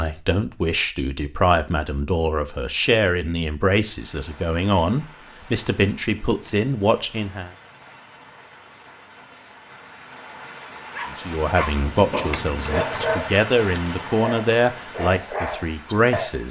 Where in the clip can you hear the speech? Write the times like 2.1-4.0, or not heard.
0.0-7.5, 11.2-16.4.